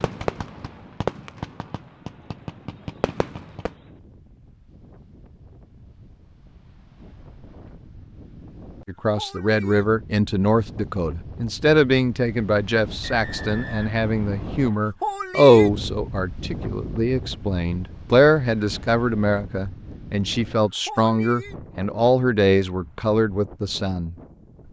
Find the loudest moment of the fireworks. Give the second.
1 s.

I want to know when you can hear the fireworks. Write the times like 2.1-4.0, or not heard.
0.0-3.7.